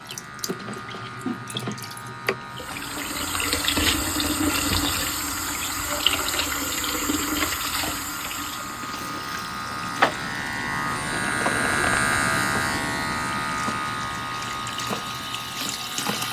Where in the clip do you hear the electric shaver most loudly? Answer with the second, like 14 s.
12 s.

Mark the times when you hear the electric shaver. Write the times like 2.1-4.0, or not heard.
0.0-16.2.